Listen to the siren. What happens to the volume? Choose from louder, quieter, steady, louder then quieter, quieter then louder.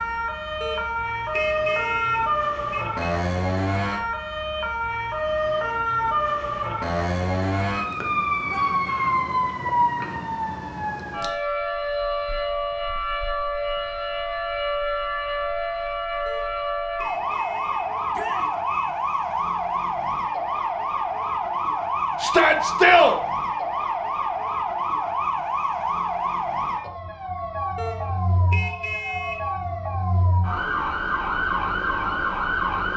steady.